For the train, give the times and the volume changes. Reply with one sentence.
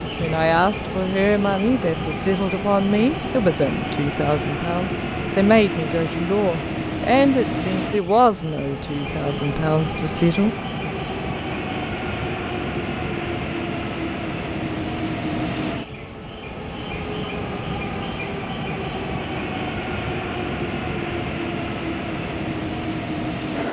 The train can be heard from 0.0 to 23.6 s, at a steady volume.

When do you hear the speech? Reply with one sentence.
The speech can be heard from 0.1 to 10.6 s.